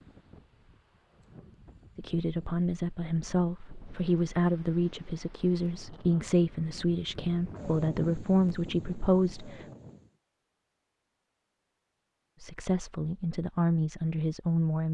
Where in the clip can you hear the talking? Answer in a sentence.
You can hear the talking from 1.9 to 9.7 s and from 12.4 to 14.8 s.